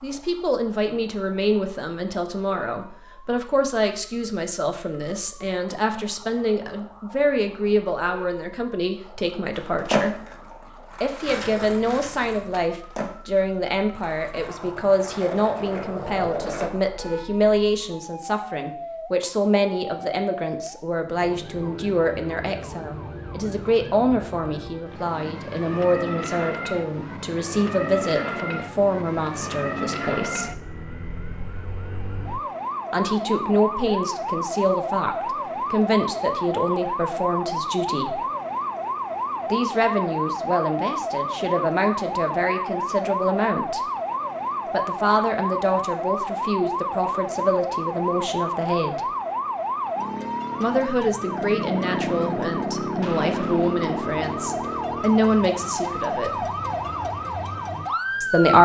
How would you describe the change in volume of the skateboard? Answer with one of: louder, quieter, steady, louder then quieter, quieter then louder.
quieter then louder.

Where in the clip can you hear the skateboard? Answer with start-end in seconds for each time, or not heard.
9.6-16.7.